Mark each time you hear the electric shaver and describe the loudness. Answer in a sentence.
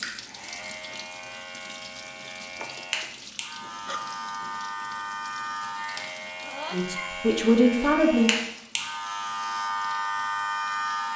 You can hear the electric shaver from 0.0 to 11.1 s, getting louder.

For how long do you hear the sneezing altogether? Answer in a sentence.
The sneezing can be heard for 2 seconds in total.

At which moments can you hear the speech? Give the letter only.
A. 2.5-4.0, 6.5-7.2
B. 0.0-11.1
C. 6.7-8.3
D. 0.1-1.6
C.